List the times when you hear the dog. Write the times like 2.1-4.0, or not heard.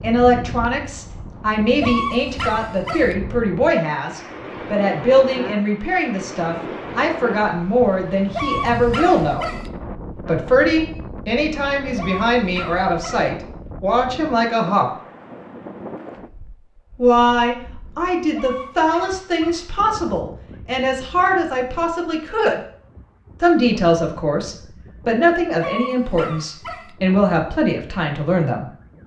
1.8-3.1, 8.3-9.7, 11.9-13.3, 18.3-19.7, 25.6-26.9.